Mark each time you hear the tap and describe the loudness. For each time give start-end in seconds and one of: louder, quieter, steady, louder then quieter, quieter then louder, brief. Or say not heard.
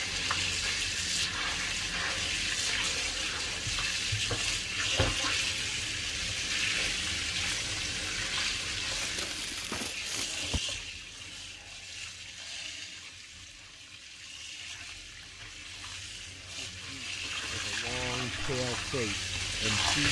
0.0-20.0 quieter then louder.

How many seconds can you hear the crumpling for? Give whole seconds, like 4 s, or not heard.
2 s.